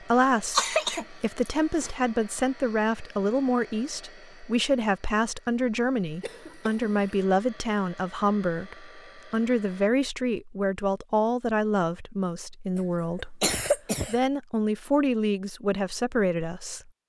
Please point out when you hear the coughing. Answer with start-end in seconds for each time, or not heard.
0.1-1.9, 6.2-7.1, 13.2-14.2.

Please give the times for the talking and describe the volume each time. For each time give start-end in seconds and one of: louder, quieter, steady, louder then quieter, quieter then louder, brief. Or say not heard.
0.0-16.9 steady.